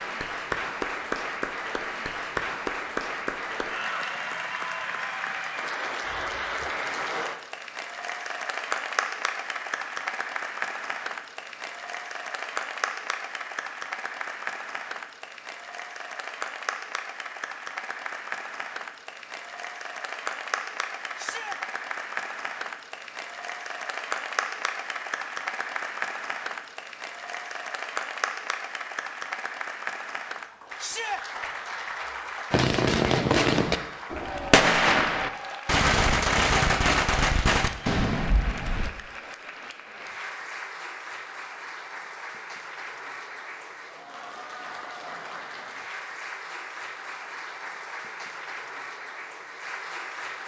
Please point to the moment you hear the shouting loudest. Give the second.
31 s.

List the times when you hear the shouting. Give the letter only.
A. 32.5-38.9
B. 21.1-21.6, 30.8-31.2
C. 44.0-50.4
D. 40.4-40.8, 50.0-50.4
B.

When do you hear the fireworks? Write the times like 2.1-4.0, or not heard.
32.5-38.9.